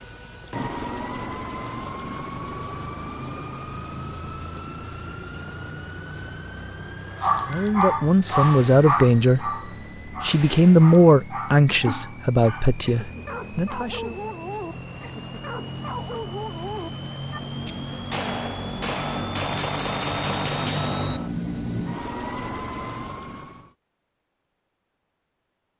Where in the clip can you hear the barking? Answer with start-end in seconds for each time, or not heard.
7.2-17.4.